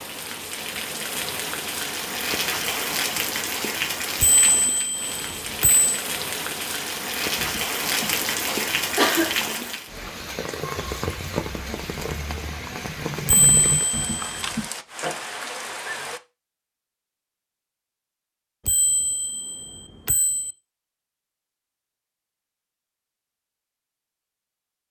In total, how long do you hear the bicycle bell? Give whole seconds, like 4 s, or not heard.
5 s.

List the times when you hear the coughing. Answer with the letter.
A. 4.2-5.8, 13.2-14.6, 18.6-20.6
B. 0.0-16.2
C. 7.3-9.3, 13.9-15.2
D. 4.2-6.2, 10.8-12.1
C.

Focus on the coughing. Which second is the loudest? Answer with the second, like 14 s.
9 s.